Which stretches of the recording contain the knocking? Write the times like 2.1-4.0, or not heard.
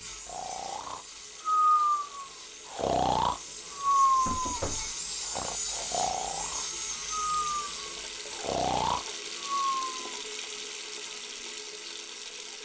4.2-5.0.